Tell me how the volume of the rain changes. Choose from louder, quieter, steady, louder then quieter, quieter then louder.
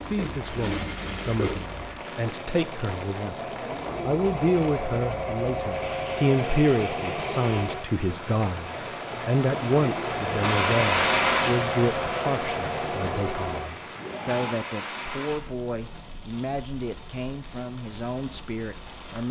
louder then quieter.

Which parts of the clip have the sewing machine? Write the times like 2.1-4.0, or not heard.
0.0-14.6.